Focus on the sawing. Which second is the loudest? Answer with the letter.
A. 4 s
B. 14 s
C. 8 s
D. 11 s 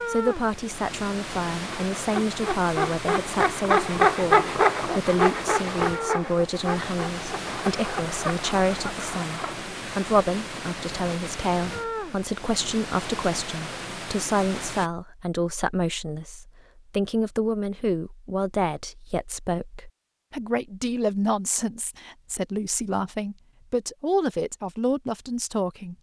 A.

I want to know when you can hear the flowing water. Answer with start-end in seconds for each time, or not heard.
0.0-14.9.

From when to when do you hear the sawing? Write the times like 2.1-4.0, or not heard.
1.5-9.6.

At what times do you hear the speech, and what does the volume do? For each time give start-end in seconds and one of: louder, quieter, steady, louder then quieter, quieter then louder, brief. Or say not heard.
0.1-25.9 steady.